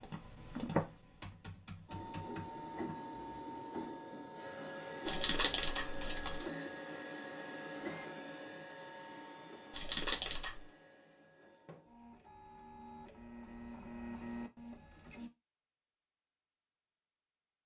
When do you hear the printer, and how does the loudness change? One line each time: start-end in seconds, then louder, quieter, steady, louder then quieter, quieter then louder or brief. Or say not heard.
1.9-15.3 quieter then louder.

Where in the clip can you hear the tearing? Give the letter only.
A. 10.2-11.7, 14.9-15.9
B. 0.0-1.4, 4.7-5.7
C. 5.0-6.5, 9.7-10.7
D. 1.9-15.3
C.